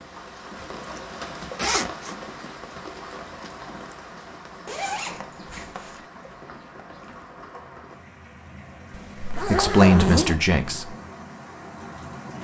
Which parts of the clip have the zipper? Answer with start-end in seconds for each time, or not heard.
0.6-2.1, 4.7-6.0, 8.9-10.4.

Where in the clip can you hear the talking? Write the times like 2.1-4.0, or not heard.
9.3-10.9.